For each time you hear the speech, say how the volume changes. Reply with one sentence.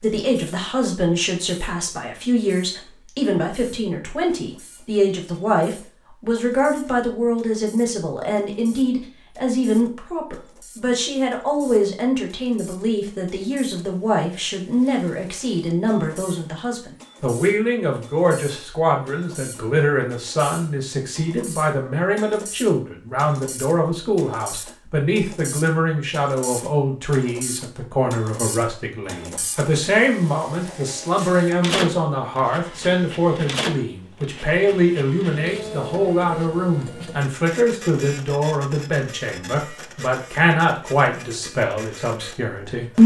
The speech can be heard from 0.0 to 43.0 s, at a steady volume.